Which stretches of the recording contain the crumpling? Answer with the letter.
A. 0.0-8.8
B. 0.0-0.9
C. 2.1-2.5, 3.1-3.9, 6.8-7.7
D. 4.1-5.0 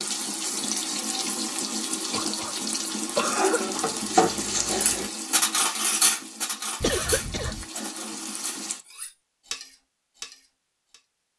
D.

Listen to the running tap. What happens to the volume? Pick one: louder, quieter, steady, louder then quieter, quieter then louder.
quieter.